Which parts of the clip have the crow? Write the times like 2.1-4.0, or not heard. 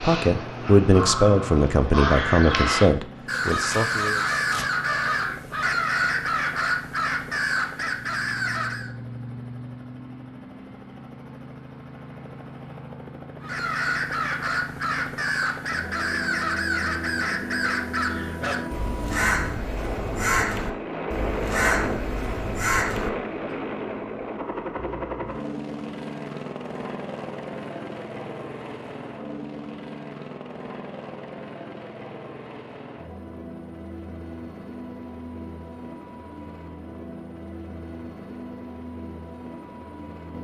0.0-8.9, 13.4-23.1.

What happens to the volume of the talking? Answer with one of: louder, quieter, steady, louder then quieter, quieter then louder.
quieter.